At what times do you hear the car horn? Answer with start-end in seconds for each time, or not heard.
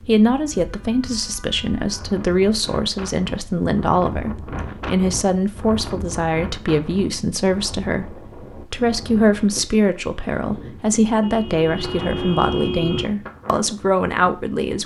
0.5-2.1, 11.2-13.1.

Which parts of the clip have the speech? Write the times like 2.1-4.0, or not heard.
0.1-14.8.